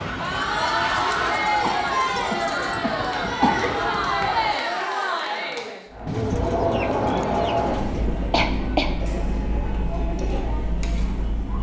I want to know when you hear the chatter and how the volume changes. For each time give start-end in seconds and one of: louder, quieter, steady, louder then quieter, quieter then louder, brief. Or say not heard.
0.1-11.5 quieter.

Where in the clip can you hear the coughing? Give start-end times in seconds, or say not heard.
1.6-3.9, 8.3-8.9.